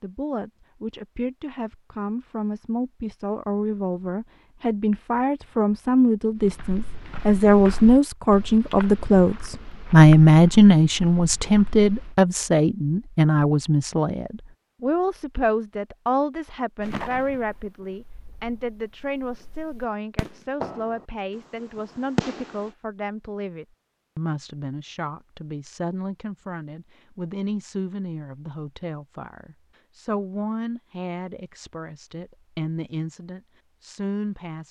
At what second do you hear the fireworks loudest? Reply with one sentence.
The loudest moment of the fireworks is at 22 seconds.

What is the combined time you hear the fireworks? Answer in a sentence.
You can hear the fireworks for 6 seconds altogether.